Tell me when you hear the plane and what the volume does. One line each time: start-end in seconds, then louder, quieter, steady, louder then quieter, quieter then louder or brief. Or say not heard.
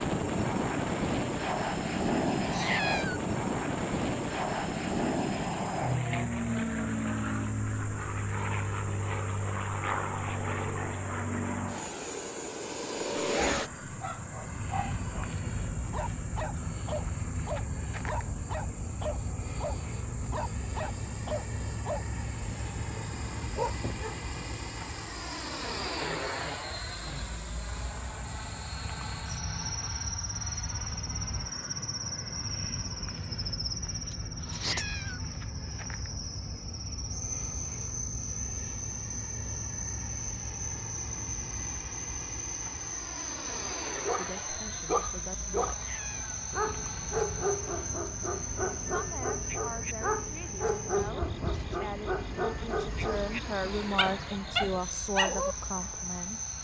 0.0-56.5 quieter.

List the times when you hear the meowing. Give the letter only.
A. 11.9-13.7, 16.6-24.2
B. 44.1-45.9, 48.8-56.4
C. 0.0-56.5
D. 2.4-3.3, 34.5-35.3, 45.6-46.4
D.